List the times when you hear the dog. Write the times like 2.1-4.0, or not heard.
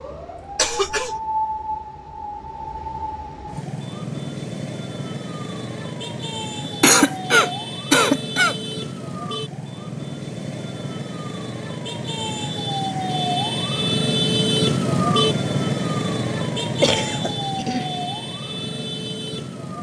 not heard.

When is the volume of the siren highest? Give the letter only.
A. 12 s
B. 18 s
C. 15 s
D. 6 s
C.